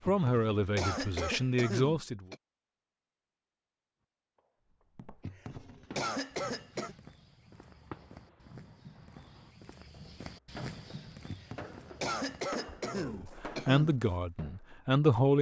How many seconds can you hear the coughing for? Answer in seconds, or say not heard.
7 s.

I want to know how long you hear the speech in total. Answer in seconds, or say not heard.
5 s.